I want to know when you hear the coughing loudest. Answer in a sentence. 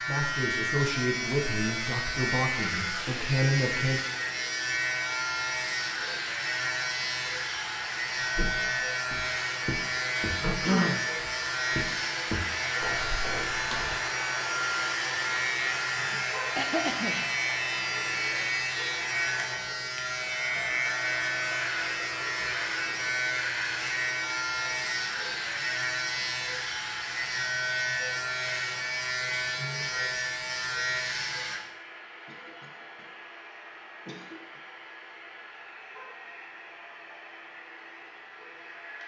The loudest moment of the coughing is at 11 seconds.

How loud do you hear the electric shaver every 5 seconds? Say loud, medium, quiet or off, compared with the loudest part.
loud, loud, loud, loud, loud, loud, loud, off.